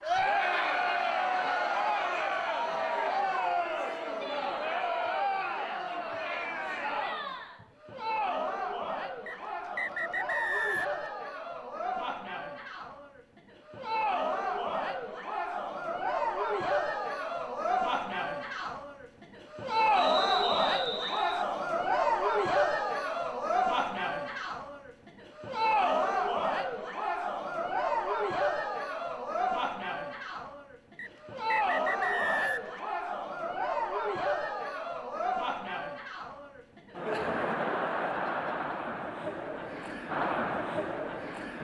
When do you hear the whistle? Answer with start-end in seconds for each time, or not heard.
9.2-11.1, 19.9-21.4, 30.9-32.8.